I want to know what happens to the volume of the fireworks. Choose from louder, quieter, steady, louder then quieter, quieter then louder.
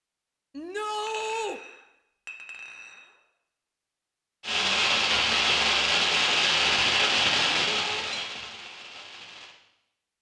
quieter.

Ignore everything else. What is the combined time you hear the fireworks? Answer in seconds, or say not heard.
5 s.